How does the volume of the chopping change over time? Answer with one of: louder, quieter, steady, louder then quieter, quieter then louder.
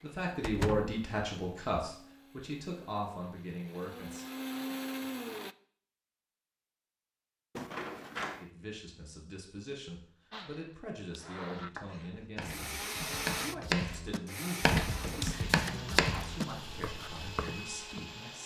louder then quieter.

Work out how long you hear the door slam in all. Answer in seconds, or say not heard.
2 s.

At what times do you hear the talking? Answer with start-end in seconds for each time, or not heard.
0.0-4.2, 8.4-18.4.